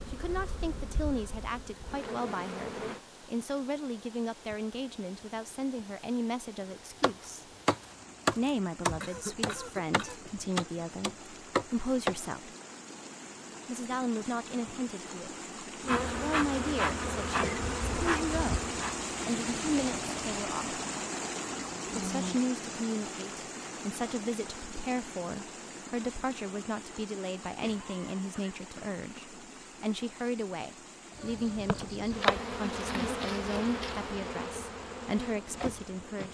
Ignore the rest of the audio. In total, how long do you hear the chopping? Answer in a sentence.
You can hear the chopping for 5 seconds altogether.